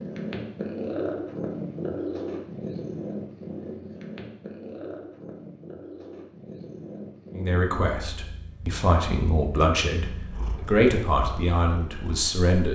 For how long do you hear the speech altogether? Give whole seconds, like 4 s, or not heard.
5 s.